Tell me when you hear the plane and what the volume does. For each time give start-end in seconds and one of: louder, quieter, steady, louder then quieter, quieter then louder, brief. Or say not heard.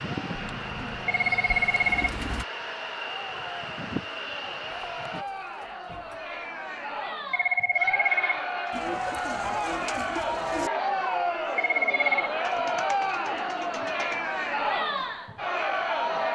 0.0-5.2 steady.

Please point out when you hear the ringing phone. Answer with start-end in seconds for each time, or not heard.
1.1-2.1, 7.3-8.4, 11.6-12.3.